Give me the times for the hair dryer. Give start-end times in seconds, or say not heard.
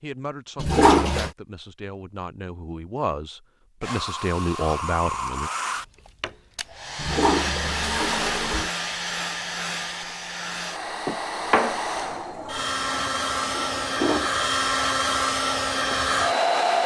3.8-16.8.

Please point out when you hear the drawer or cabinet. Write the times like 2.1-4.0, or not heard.
11.1-11.8.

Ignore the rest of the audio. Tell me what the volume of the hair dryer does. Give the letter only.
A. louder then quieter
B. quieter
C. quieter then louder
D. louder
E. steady
D.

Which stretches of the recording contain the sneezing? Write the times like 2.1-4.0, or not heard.
not heard.